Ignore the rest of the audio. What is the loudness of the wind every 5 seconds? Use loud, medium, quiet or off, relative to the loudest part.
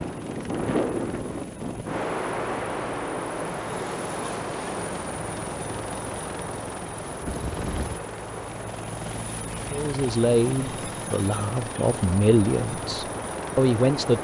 loud, medium, medium.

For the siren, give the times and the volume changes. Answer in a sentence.
You can't hear the siren here.